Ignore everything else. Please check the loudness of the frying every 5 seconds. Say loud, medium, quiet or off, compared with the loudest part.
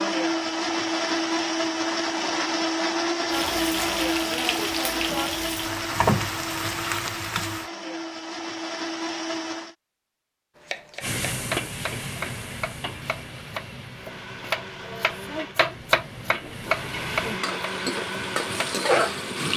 loud, loud, medium, loud.